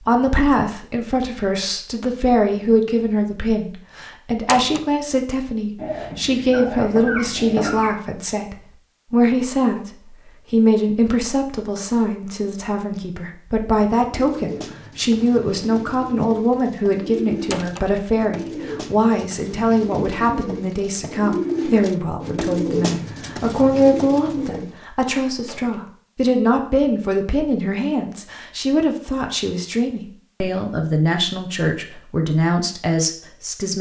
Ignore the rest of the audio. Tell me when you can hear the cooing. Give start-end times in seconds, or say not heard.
13.9-24.8.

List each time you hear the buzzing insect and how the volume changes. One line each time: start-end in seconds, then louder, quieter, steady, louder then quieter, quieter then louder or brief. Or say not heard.
not heard.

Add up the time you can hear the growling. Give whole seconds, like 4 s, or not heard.
2 s.